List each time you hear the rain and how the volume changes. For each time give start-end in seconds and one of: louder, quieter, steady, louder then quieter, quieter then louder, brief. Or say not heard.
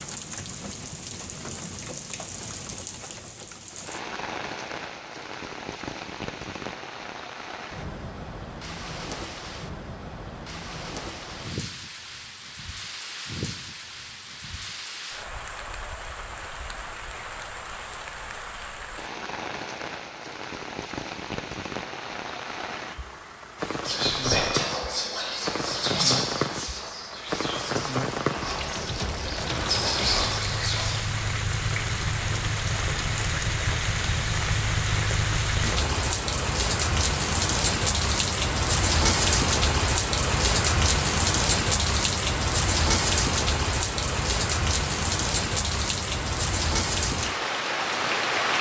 0.0-48.5 louder.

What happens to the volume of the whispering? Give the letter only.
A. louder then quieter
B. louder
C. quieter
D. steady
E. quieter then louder
E.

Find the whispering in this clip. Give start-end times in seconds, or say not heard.
23.9-31.1.